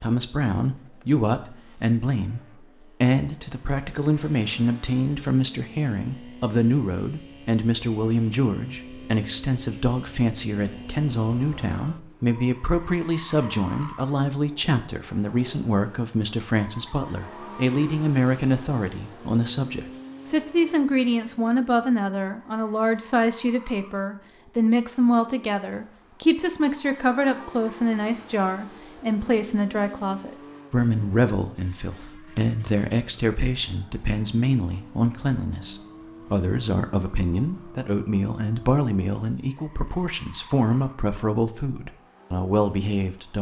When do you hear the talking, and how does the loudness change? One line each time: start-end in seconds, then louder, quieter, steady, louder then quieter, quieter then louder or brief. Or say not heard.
0.0-43.3 steady.